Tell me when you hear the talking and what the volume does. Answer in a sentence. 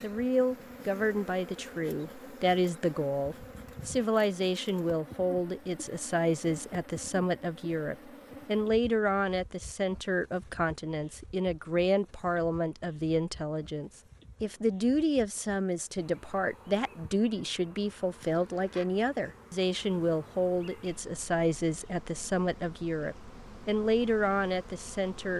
You can hear the talking from 0.0 to 25.3 s, at a steady volume.